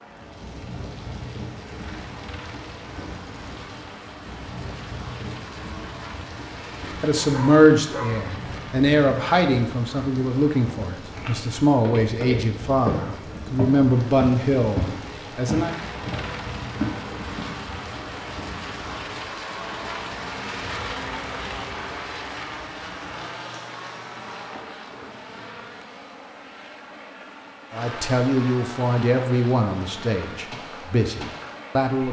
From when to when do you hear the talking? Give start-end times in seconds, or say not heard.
7.0-15.8, 27.7-32.0.